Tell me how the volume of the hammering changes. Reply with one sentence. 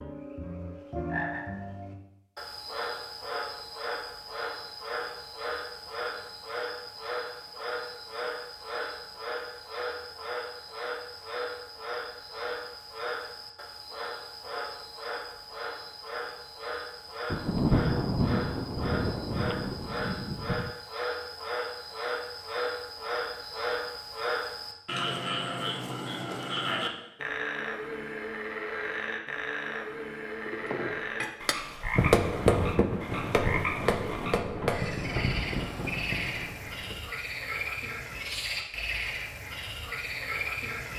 The loudness of the hammering goes up, then down.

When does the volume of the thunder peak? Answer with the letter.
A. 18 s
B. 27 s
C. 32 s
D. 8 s
A.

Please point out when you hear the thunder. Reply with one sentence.
You can hear the thunder from 17.3 to 20.8 s.